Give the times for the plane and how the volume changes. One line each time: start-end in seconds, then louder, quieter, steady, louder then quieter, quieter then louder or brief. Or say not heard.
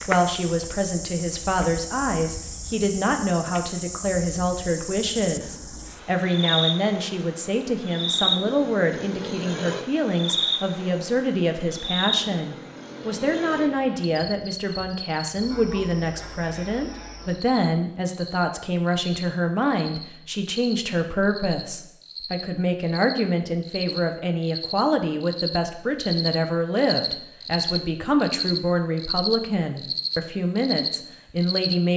not heard.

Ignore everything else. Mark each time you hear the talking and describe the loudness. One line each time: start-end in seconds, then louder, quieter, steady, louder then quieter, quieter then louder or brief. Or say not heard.
0.1-31.9 steady.